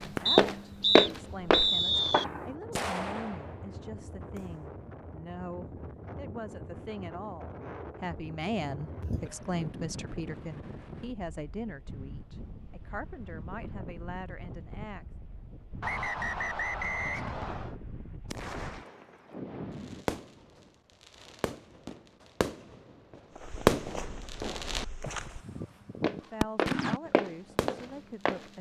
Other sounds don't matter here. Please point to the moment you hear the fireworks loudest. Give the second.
24 s.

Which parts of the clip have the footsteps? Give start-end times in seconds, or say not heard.
0.0-2.1, 23.4-28.4.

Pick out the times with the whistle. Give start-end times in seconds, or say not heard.
0.2-2.2, 15.8-17.8.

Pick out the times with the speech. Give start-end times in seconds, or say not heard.
0.0-15.1, 26.1-28.5.